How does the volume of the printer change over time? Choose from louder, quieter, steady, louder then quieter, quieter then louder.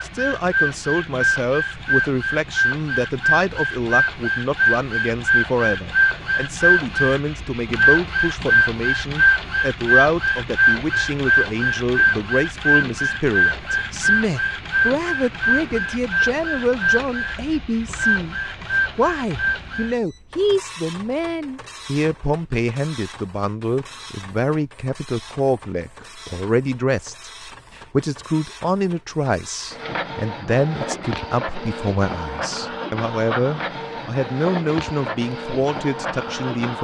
quieter then louder.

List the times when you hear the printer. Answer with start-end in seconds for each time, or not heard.
0.0-36.7.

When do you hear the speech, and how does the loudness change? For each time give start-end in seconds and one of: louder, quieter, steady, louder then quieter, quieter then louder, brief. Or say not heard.
0.0-36.7 steady.